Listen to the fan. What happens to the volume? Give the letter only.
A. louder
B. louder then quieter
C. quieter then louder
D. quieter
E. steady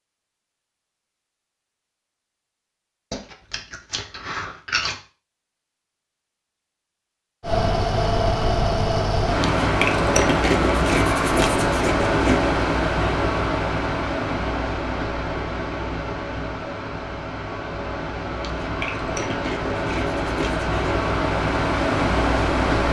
C.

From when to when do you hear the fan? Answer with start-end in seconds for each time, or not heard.
7.4-22.8.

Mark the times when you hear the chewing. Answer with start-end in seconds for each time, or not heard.
3.1-5.0, 9.4-12.4, 18.4-20.9.